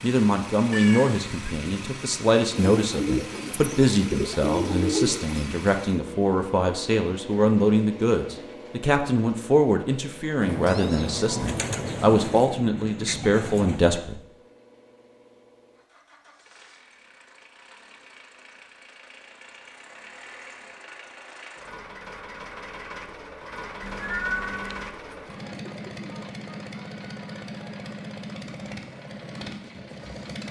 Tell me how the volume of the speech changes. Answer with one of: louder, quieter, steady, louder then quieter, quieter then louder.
steady.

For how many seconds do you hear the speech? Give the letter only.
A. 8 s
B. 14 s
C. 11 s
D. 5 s
B.